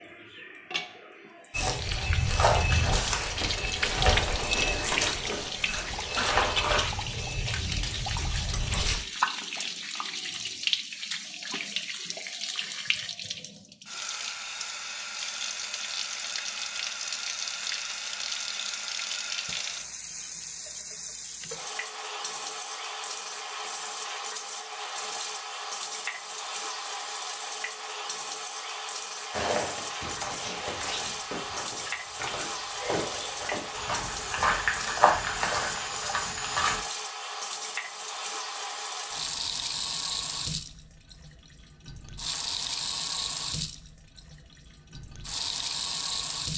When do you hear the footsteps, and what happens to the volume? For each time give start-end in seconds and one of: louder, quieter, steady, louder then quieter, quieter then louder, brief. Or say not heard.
1.5-9.0 quieter
29.3-36.8 louder.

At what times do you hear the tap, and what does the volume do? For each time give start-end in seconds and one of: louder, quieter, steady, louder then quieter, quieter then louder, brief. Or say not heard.
0.0-46.5 steady.